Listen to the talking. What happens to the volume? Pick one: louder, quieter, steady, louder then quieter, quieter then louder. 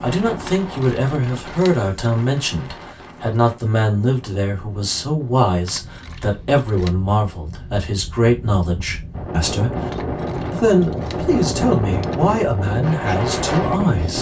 steady.